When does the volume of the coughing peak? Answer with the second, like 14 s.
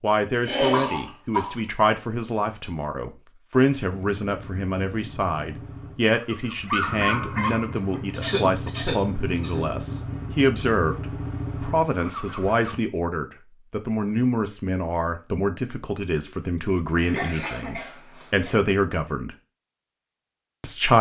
1 s.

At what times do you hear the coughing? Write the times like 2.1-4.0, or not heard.
0.5-1.6, 8.1-9.7, 16.9-18.6.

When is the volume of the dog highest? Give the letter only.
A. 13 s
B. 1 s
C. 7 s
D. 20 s
C.